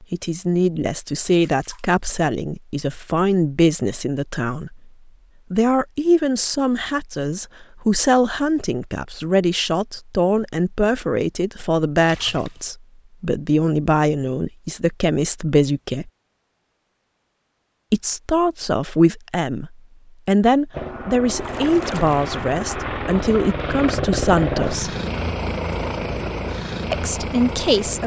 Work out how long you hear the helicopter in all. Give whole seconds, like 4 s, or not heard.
7 s.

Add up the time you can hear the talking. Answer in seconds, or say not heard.
24 s.